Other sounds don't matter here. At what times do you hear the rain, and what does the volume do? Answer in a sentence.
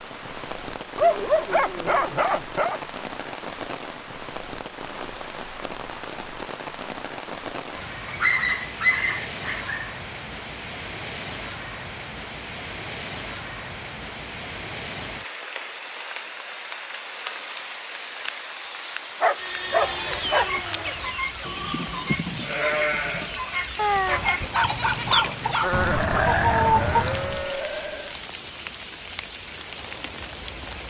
You can hear the rain from 0.0 to 30.8 s, at a steady volume.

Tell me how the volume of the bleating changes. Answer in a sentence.
The volume of the bleating goes up.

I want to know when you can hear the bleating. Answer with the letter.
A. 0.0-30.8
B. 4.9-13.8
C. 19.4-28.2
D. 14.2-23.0
C.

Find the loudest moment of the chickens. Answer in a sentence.
The volume of the chickens peaks at 27 seconds.